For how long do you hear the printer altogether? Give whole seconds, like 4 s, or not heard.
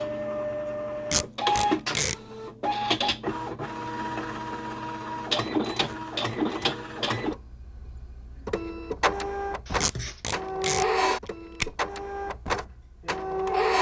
14 s.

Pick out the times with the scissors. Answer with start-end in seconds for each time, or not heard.
9.7-10.2.